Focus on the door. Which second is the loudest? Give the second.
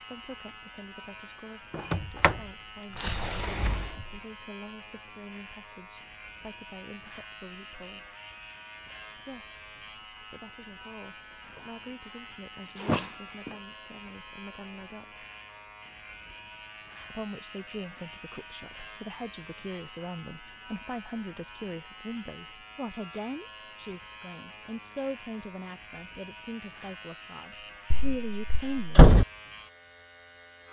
29 s.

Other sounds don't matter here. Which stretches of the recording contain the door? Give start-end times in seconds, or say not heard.
1.8-2.4, 3.0-3.9, 12.8-13.6, 27.9-29.2.